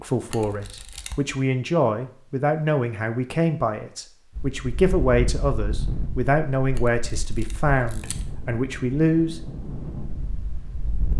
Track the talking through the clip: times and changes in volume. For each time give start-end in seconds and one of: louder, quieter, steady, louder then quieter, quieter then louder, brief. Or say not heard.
0.0-9.4 steady.